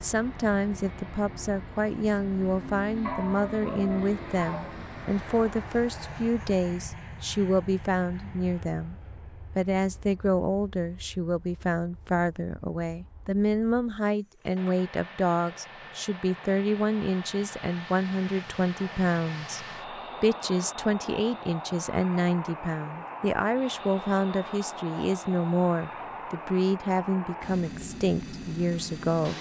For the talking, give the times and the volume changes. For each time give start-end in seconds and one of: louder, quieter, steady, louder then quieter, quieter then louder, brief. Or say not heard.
0.0-29.3 steady.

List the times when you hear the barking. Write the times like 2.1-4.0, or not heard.
3.0-4.8.